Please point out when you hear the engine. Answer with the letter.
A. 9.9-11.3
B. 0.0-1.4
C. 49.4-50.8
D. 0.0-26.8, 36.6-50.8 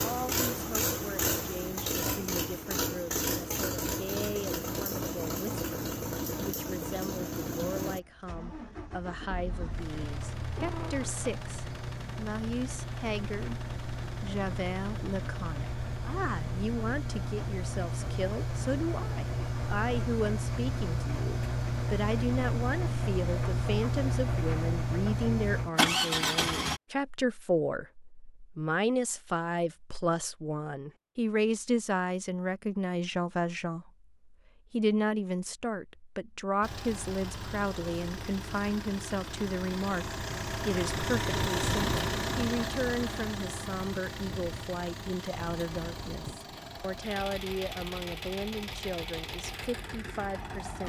D.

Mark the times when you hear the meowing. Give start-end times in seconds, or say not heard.
9.9-11.3.